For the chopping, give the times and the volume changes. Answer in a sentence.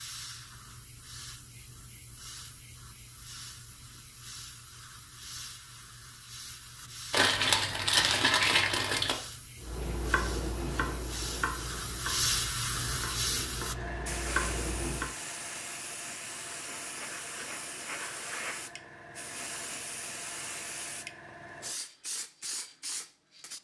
The chopping can be heard from 9.6 to 15.2 s, getting quieter then louder.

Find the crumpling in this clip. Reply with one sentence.
You can hear the crumpling from 7.1 to 9.2 s.